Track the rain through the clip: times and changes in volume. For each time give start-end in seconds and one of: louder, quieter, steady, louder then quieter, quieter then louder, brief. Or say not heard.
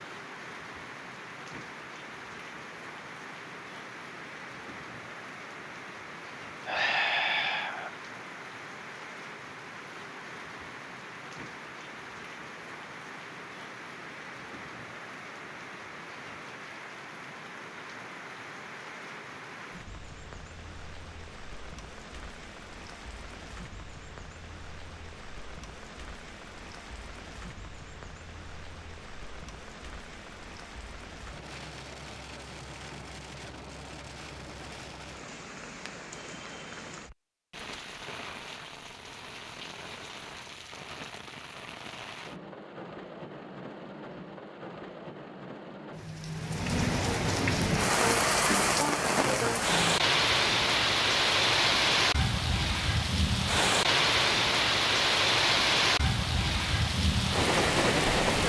0.0-58.4 louder.